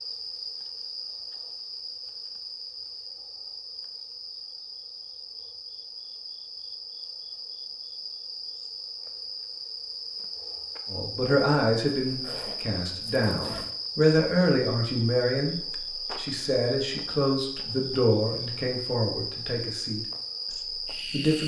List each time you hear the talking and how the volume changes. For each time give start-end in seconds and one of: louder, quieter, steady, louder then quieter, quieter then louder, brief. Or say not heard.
10.9-21.4 quieter.